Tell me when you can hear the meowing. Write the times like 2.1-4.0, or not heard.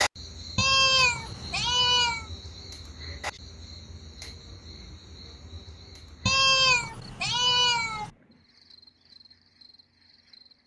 0.6-2.2, 6.2-8.1.